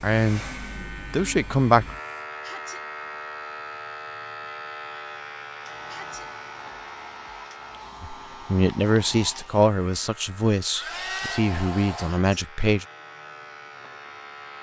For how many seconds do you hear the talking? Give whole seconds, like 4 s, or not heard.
7 s.